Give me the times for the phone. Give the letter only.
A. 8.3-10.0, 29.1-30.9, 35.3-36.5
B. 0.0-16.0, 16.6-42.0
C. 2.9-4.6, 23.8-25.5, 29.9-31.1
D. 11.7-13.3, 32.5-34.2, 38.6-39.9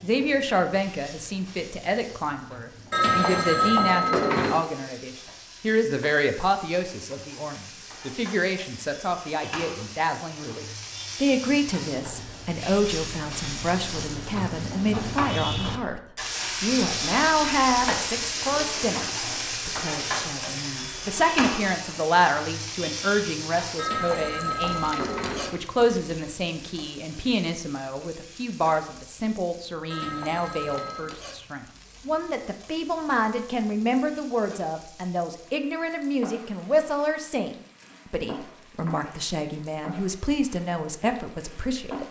C.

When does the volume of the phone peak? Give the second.
4 s.